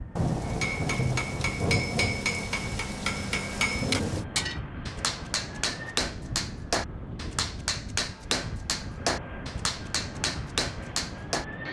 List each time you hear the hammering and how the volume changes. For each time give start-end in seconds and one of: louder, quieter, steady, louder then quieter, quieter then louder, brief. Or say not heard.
0.5-11.4 steady.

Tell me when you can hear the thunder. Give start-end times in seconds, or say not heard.
0.1-4.2.